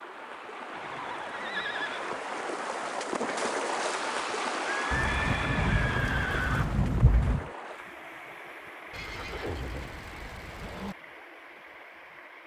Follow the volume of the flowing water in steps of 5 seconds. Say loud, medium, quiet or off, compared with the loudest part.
loud, medium, quiet.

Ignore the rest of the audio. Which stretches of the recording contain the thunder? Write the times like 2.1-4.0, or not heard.
4.9-7.5.